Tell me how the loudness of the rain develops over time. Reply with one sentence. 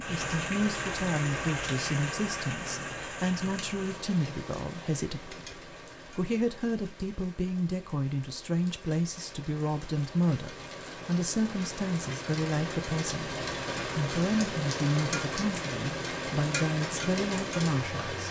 The loudness of the rain goes down, then up.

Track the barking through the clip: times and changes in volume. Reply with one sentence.
You can't hear the barking here.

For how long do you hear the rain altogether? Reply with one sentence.
The rain can be heard for 18 seconds in total.